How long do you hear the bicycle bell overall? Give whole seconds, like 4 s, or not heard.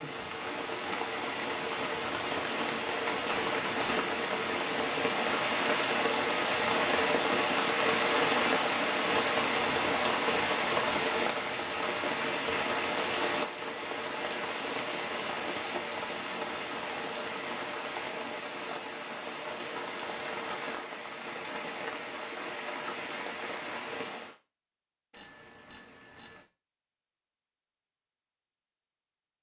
3 s.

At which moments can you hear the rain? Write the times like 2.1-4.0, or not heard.
0.0-24.4.